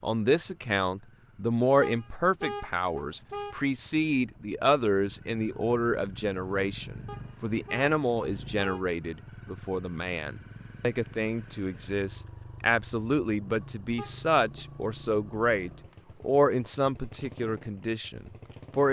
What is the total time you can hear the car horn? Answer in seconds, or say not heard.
4 s.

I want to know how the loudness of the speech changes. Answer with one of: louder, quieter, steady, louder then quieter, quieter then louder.
steady.